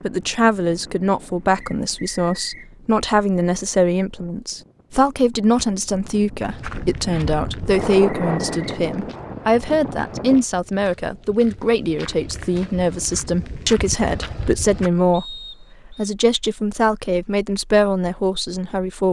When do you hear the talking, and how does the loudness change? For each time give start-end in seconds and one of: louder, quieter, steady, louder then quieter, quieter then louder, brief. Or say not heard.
0.0-19.0 steady.